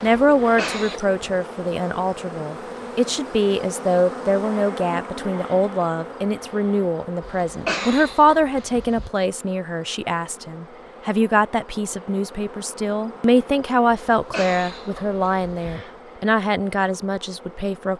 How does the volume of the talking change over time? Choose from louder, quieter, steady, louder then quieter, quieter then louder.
steady.